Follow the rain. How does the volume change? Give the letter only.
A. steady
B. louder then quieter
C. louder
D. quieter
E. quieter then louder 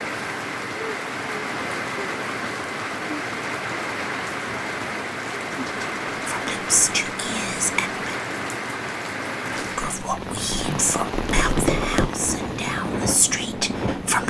A.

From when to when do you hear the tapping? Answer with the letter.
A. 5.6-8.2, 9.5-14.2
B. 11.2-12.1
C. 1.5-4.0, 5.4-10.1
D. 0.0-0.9
B.